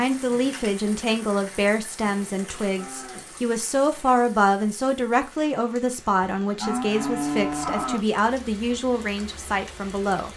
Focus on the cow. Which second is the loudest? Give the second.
7 s.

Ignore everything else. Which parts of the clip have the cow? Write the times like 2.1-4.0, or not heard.
2.0-3.4, 6.3-8.1.